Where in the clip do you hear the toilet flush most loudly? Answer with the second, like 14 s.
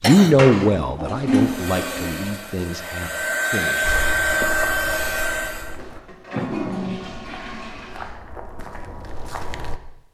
1 s.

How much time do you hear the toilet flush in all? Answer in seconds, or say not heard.
5 s.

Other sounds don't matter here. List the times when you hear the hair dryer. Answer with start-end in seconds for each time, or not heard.
1.4-5.8.